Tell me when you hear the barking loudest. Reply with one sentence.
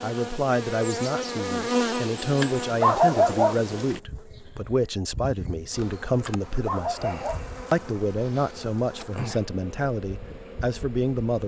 The loudest moment of the barking is at 3 seconds.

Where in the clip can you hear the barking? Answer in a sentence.
You can hear the barking from 2.4 to 4.0 s and from 6.2 to 7.8 s.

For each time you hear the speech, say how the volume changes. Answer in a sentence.
You can hear the speech from 0.0 to 11.4 s, at a steady volume.